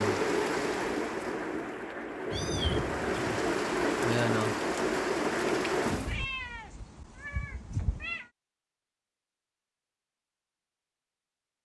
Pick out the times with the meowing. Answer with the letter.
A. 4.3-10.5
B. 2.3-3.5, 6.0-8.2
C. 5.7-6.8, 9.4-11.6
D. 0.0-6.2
B.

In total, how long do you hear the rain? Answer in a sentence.
The rain can be heard for 6 seconds in total.